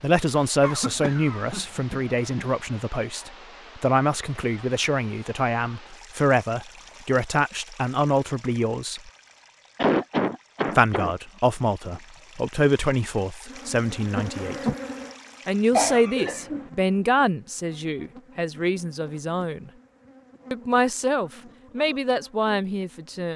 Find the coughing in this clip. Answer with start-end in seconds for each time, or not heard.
0.6-2.5, 9.8-11.1, 15.7-16.7.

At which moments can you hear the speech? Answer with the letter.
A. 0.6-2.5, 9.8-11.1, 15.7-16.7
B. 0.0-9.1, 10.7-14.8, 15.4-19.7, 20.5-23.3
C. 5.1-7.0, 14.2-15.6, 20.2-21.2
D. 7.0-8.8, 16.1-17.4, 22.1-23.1
B.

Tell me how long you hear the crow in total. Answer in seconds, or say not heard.
not heard.